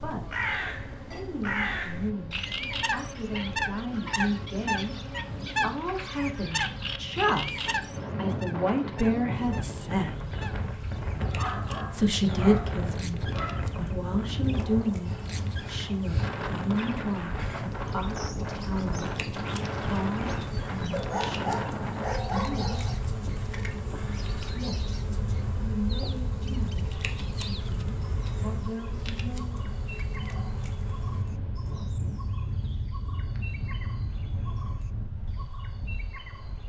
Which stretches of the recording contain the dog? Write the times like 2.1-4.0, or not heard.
11.3-13.8, 20.9-22.9.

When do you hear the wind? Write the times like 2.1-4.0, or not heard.
0.0-36.6.